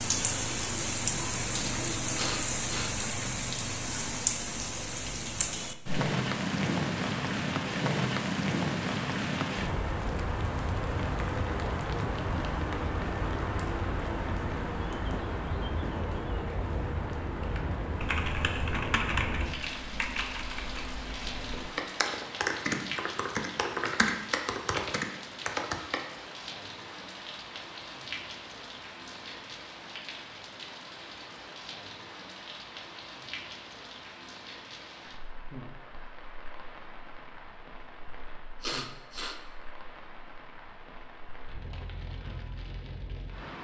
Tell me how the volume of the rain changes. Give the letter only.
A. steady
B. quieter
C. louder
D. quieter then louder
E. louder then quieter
B.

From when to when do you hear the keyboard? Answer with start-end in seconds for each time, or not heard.
17.4-26.0.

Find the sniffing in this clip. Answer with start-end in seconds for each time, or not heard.
2.1-3.0, 38.6-39.4.